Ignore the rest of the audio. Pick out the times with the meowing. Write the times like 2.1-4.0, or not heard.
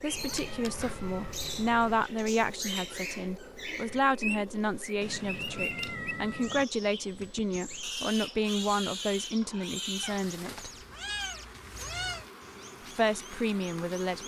0.1-2.0, 5.0-6.7, 10.0-12.3.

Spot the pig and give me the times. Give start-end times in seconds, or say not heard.
3.0-4.9, 7.8-10.1.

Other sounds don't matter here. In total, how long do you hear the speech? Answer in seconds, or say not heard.
12 s.